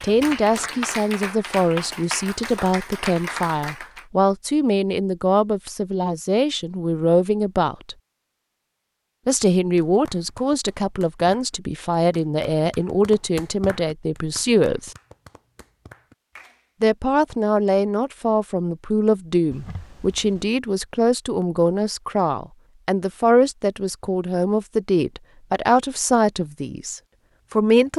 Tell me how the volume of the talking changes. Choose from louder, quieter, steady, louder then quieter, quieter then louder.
steady.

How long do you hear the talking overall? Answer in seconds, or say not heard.
25 s.